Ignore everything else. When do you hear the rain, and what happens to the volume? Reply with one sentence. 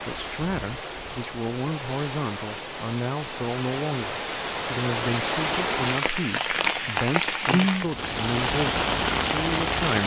The rain can be heard from 0.0 to 10.0 s, getting louder.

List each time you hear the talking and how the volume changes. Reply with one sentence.
The talking can be heard from 0.0 to 10.0 s, at a steady volume.